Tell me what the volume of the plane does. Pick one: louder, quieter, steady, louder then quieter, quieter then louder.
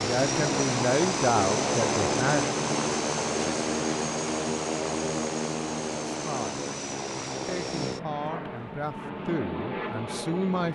quieter.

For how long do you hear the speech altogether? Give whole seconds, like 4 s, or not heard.
6 s.